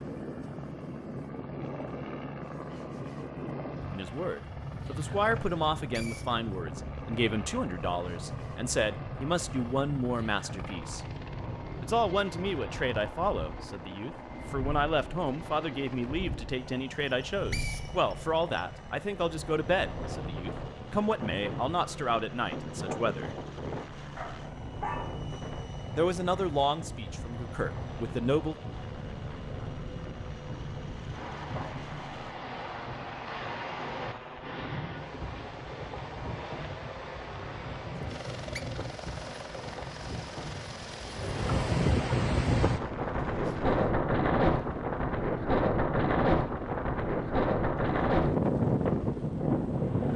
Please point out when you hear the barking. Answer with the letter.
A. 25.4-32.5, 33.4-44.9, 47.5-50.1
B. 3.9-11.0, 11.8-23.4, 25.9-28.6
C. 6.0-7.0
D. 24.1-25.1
D.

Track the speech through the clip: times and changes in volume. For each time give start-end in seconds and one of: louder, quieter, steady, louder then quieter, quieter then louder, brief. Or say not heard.
3.9-11.0 steady
11.8-23.4 steady
25.9-28.6 brief.